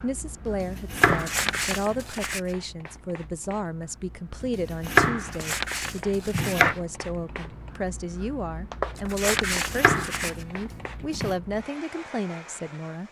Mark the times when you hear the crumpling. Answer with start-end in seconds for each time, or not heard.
1.1-2.5, 5.2-6.7, 8.9-10.4.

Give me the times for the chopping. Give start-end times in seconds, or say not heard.
0.5-2.0, 4.4-6.8, 9.3-11.3.